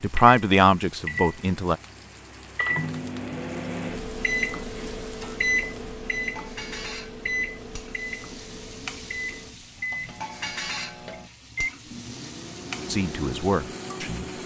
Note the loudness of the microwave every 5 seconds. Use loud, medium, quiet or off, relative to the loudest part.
loud, loud, medium.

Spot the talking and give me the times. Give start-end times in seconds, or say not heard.
0.0-1.8, 12.9-14.2.